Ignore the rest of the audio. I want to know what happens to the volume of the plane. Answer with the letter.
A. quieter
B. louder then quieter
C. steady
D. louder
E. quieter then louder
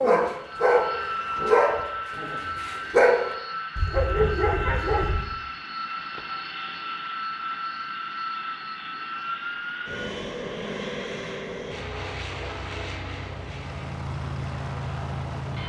C.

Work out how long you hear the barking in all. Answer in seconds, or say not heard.
5 s.